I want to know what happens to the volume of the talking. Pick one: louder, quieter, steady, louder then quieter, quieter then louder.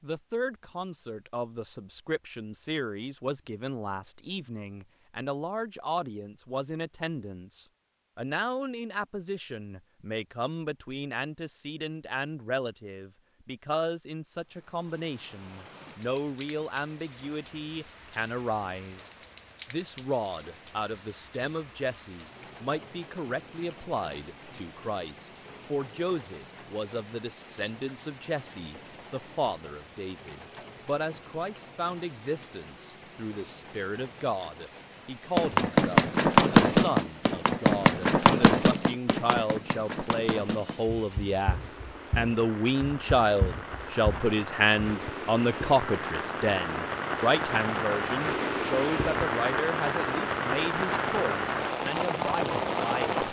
louder.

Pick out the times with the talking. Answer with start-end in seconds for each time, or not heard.
0.0-19.1, 19.7-53.2.